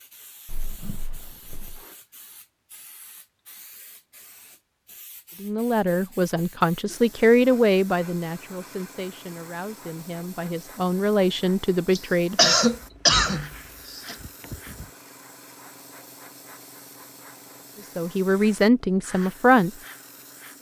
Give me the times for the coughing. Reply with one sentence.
The coughing can be heard from 11.9 to 14.2 s.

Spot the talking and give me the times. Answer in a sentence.
The talking can be heard from 5.4 to 12.6 s and from 17.9 to 19.7 s.